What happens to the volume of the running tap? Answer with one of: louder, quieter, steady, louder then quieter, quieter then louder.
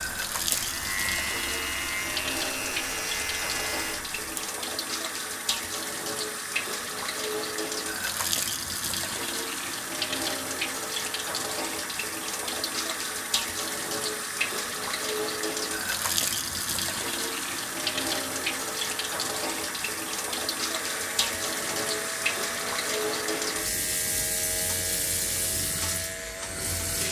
steady.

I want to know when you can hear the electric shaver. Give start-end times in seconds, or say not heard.
0.0-4.3, 20.7-27.0.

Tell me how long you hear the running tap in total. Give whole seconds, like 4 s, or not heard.
27 s.